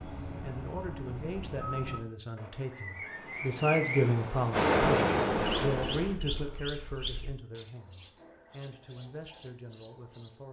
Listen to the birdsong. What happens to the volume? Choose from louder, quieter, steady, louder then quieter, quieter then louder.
louder.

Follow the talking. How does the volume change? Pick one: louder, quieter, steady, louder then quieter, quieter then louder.
louder then quieter.